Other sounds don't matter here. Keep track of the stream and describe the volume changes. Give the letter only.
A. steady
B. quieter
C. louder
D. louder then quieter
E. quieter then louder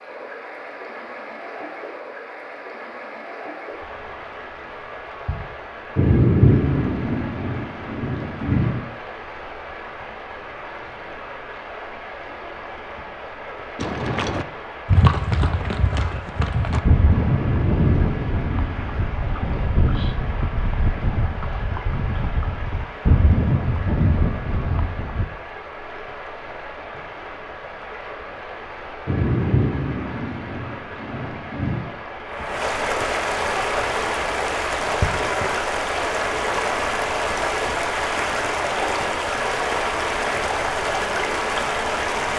C.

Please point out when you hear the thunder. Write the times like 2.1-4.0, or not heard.
6.0-8.8, 17.4-20.2, 29.1-31.8.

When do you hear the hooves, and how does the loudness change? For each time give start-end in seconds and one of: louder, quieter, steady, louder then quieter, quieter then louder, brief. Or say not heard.
13.8-25.2 quieter then louder.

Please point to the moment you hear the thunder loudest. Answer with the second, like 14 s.
6 s.